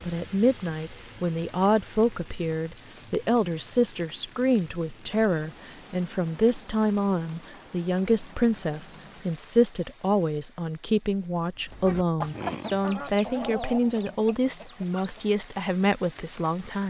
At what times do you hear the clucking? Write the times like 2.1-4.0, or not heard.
11.6-15.4.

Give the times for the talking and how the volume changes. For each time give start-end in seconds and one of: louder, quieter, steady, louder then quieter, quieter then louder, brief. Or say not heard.
0.1-16.8 steady.